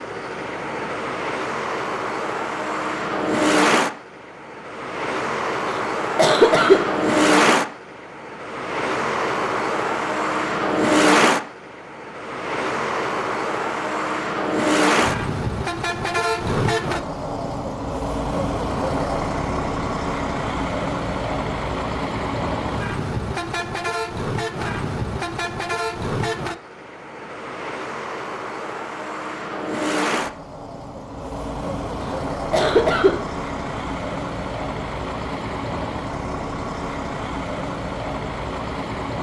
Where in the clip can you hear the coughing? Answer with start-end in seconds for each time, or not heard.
5.7-6.8, 32.0-33.1.